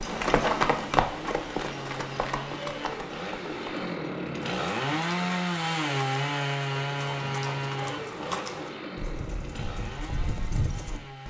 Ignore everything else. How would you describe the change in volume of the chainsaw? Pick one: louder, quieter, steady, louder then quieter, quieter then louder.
louder then quieter.